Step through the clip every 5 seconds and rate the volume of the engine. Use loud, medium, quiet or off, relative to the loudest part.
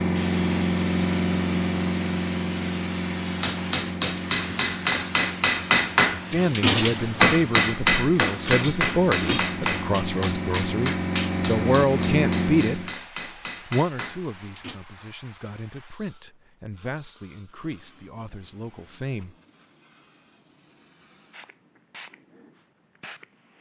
loud, medium, loud, off, off.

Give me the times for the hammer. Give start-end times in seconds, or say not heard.
3.4-14.8.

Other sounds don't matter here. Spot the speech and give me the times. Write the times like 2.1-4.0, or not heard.
6.3-12.8, 13.7-19.4.